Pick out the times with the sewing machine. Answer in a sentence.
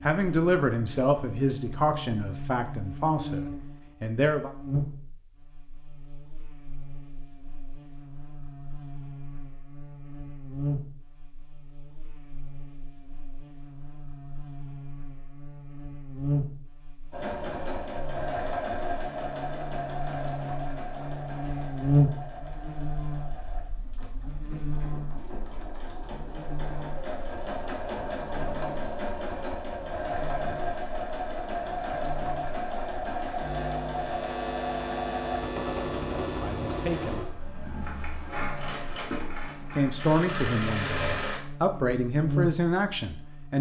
The sewing machine can be heard from 17.1 to 41.4 s.